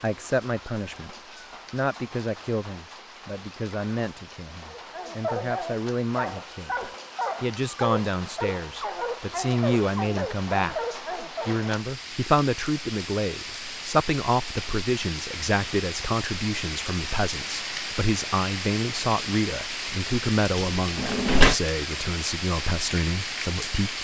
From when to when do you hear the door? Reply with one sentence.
You can hear the door from 20.6 to 21.6 s.